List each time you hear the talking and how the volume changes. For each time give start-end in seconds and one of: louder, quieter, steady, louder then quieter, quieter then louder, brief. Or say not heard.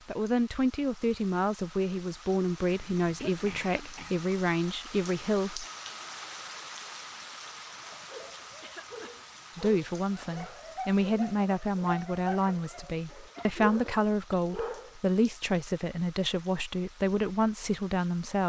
0.1-5.7 steady
9.6-18.4 steady.